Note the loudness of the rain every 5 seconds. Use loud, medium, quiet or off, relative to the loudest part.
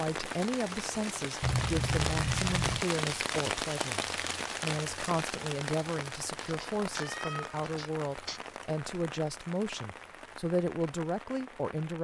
loud, medium, quiet.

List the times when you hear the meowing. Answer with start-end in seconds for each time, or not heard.
1.4-2.9, 6.4-8.4.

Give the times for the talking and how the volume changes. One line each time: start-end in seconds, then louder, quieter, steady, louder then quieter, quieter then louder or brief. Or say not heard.
0.0-11.9 steady.